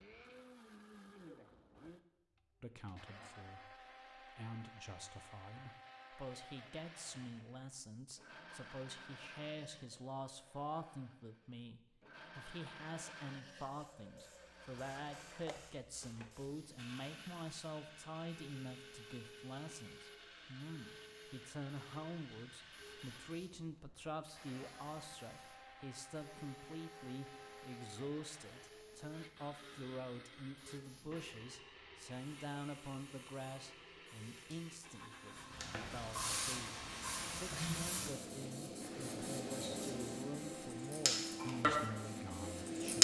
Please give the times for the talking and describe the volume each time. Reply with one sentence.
You can hear the talking from 2.6 to 42.9 s, at a steady volume.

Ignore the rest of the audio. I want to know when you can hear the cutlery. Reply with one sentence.
The cutlery can't be heard in this clip.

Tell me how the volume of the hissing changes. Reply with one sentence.
The volume of the hissing goes up.